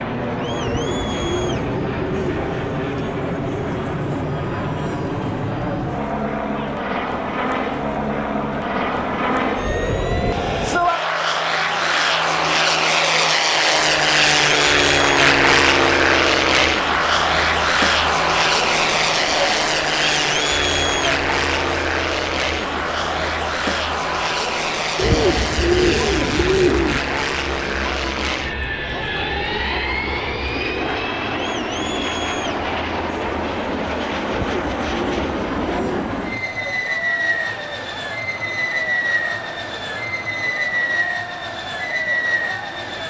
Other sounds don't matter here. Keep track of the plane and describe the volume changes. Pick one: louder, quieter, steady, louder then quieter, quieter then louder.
louder then quieter.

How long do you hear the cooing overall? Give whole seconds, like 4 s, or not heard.
6 s.